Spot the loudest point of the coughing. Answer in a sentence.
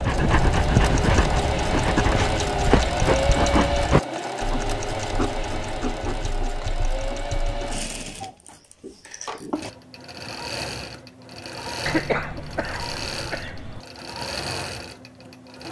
The volume of the coughing peaks at 12 seconds.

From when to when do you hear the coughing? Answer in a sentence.
You can hear the coughing from 11.8 to 13.8 s.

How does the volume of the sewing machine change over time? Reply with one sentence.
The loudness of the sewing machine goes down.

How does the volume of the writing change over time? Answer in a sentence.
The volume of the writing goes down.